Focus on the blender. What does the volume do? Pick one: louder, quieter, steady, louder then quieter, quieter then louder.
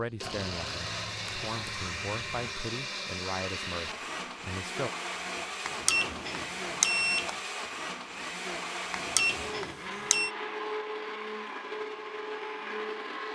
steady.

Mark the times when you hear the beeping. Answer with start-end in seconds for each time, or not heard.
0.2-2.5, 5.7-7.4, 8.9-10.3.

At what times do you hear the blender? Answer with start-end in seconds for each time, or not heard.
0.0-13.3.